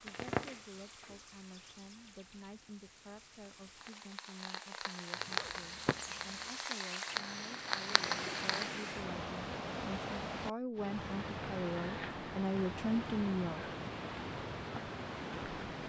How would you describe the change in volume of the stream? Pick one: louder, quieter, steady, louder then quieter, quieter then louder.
louder.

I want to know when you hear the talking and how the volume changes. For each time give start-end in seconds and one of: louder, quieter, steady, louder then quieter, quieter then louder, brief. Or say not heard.
0.0-13.7 louder.